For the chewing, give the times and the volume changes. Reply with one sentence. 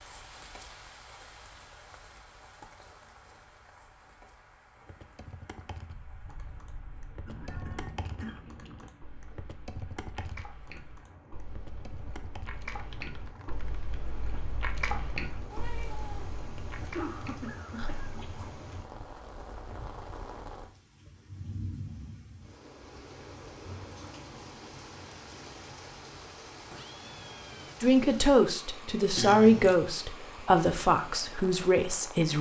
You can hear the chewing from 7.2 to 18.7 s, getting louder then quieter.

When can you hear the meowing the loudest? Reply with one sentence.
The volume of the meowing peaks at 16 seconds.